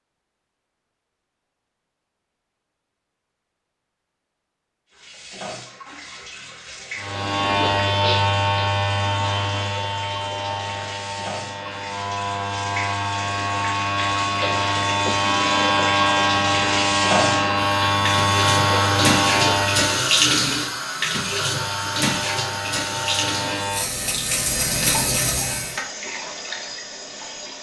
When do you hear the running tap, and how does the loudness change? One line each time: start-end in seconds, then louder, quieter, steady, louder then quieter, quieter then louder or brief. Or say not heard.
4.9-27.5 louder then quieter.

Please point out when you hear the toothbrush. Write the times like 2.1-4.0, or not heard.
not heard.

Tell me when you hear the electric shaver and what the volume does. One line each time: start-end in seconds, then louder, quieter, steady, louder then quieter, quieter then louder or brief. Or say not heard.
7.0-20.1 quieter then louder
21.1-25.8 louder.